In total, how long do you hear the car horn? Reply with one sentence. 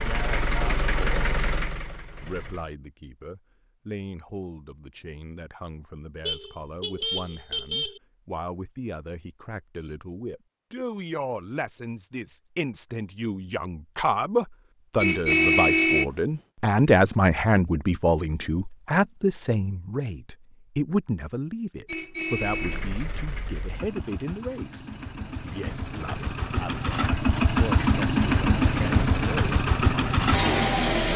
You can hear the car horn for 4 seconds altogether.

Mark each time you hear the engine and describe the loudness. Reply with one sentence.
The engine can be heard briefly from 0.0 to 2.8 s; and from 22.4 to 31.1 s, getting louder.